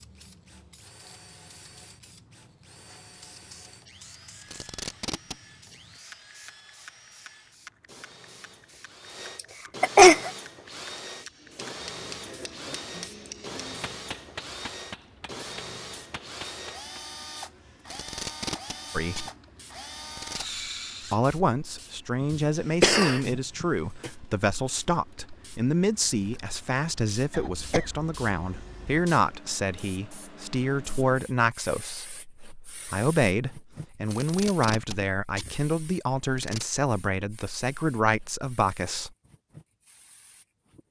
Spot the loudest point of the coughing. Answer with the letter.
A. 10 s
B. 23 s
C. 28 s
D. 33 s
A.